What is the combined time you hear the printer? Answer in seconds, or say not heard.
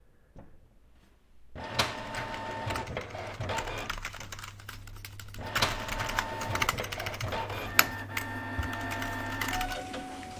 10 s.